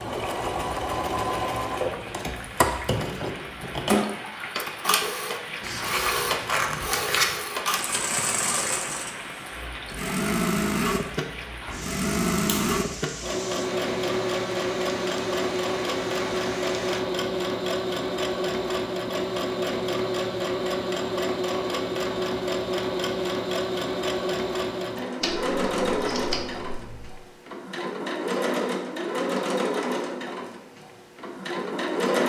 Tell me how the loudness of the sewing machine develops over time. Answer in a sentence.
The volume of the sewing machine stays about the same.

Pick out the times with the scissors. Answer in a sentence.
You can hear the scissors from 5.6 to 7.3 s, from 11.7 to 12.8 s and from 25.2 to 27.1 s.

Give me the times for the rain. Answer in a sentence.
The rain can be heard from 0.0 to 17.0 s.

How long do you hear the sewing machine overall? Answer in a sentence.
The sewing machine can be heard for 32 seconds in total.